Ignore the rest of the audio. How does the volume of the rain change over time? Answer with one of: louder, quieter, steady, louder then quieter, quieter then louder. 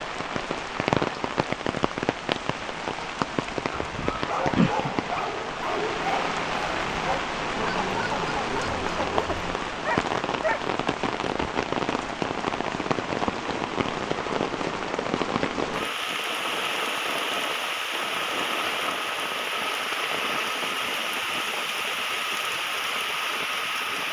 steady.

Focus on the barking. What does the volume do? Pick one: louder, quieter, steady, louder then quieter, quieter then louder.
steady.